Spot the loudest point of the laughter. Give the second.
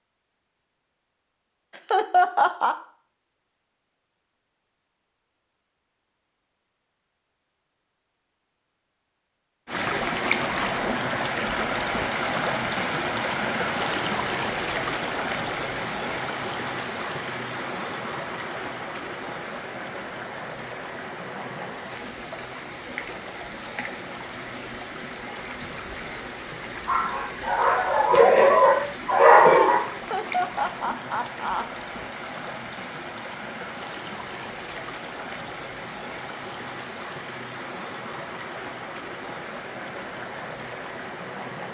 2 s.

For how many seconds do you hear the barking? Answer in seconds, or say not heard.
3 s.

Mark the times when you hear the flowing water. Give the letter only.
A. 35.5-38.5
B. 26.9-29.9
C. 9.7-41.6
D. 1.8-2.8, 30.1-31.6
C.